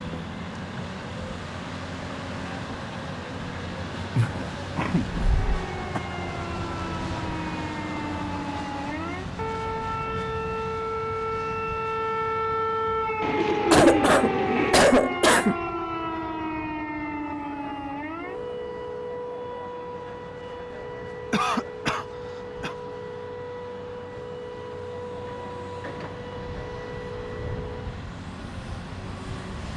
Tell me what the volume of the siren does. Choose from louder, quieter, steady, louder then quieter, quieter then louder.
louder then quieter.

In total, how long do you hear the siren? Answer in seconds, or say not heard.
23 s.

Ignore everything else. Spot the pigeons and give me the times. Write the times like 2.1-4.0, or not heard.
13.2-14.9.